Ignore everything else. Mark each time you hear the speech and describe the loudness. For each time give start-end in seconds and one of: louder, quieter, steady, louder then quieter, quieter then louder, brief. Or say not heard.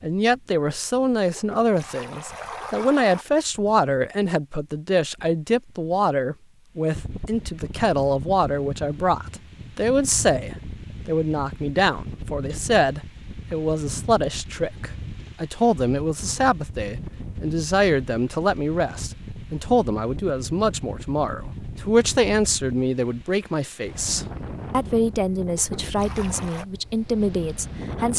0.0-28.1 steady.